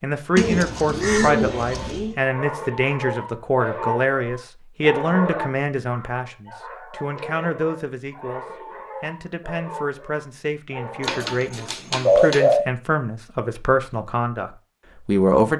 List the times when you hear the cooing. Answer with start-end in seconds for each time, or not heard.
0.3-2.1, 11.0-12.7.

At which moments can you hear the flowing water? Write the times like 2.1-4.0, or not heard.
not heard.